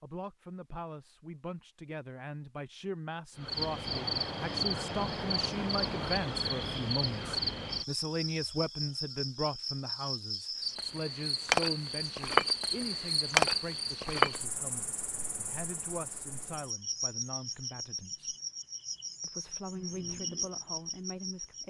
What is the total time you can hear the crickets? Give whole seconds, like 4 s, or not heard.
18 s.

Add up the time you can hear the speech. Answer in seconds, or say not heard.
21 s.